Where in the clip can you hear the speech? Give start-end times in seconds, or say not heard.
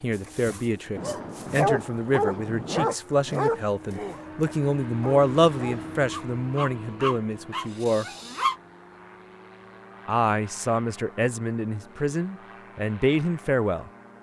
0.0-8.1, 10.1-13.9.